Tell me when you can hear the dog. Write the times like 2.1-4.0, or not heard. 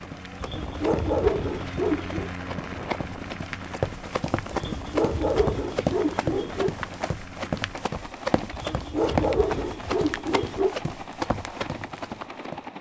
0.4-2.3, 4.5-6.8, 8.5-10.8.